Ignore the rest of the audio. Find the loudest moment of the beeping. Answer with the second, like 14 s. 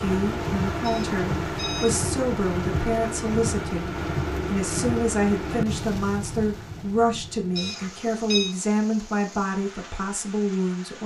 8 s.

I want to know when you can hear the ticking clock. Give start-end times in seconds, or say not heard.
not heard.